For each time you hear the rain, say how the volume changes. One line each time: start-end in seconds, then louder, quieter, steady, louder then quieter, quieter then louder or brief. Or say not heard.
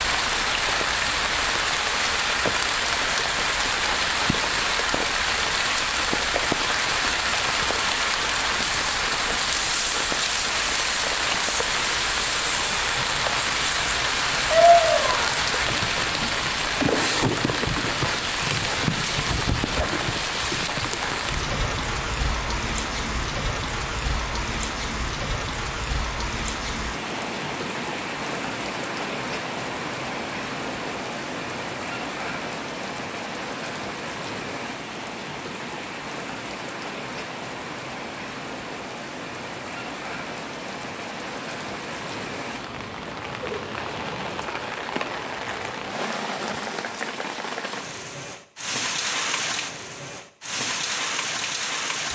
0.0-52.0 quieter.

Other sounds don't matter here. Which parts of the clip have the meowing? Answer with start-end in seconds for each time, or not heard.
14.5-15.3.